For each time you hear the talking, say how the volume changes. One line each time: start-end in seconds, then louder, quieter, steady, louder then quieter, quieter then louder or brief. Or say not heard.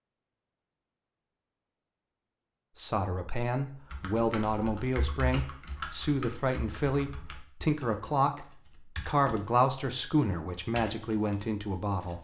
2.8-12.2 steady.